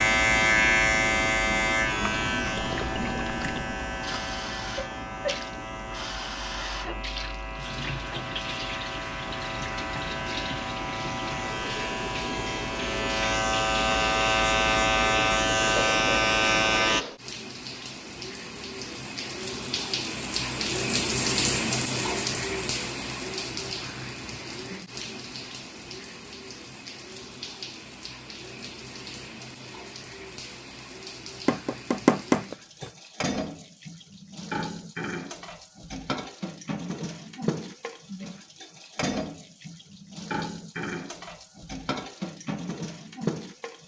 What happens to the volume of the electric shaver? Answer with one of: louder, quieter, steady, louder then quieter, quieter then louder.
quieter then louder.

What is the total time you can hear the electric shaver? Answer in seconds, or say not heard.
17 s.